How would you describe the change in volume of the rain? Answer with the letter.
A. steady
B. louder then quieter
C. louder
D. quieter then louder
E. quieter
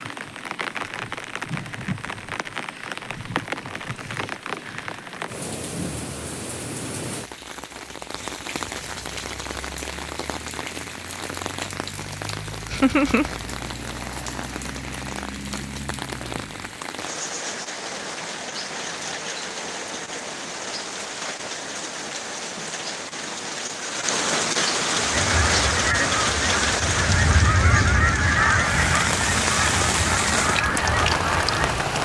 C.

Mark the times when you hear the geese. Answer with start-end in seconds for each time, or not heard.
24.9-31.7.